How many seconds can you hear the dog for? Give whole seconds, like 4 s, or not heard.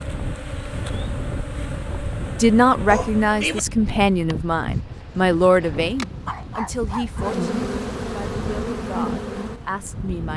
2 s.